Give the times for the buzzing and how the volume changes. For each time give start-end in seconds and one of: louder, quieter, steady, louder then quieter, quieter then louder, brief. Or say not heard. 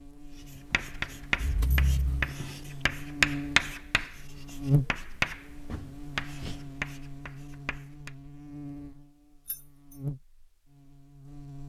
0.0-11.6 louder then quieter.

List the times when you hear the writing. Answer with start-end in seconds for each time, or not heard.
0.3-8.1.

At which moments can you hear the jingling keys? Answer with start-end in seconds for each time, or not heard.
1.4-2.4, 9.4-9.9.